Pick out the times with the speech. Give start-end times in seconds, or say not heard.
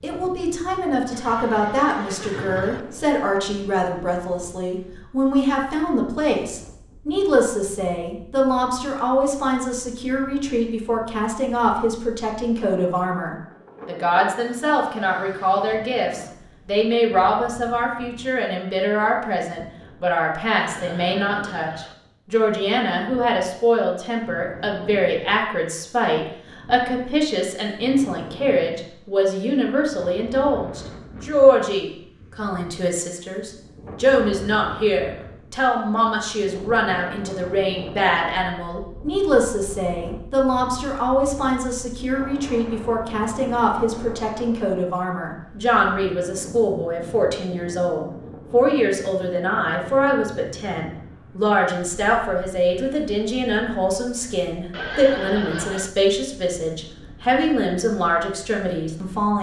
0.0-59.3.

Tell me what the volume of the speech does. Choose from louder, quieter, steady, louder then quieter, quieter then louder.
steady.